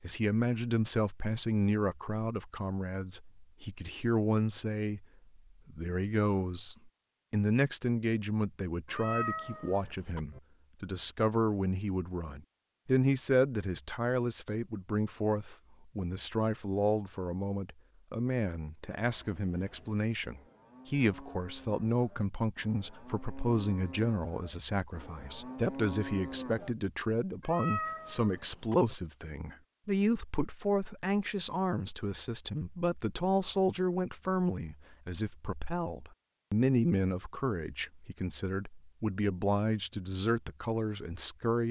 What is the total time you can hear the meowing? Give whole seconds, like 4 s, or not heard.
3 s.